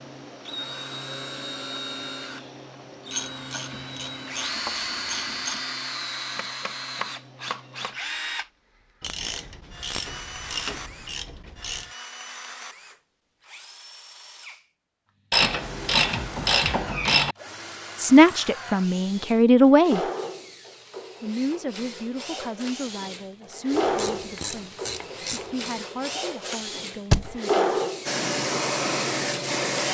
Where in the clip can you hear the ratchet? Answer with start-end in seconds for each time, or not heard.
3.1-5.6, 9.0-11.9, 15.3-17.4, 23.8-25.8.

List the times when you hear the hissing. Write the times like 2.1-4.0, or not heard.
28.1-29.8.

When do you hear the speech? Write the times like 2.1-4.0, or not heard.
17.9-20.0, 21.2-27.7.